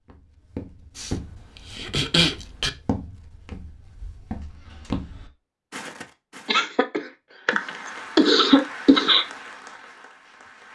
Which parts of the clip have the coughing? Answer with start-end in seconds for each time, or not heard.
0.9-2.7, 6.5-9.2.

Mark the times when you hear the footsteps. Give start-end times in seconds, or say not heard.
0.1-6.5.